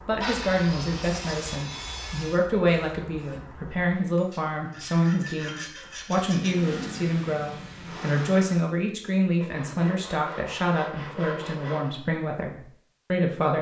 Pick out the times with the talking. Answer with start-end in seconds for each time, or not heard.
0.1-13.5.